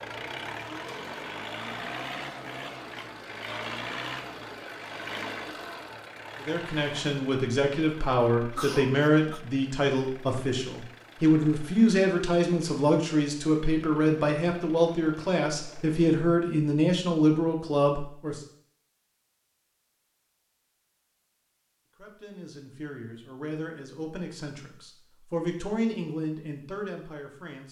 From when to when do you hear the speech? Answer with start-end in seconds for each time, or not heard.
6.4-18.4, 21.9-27.6.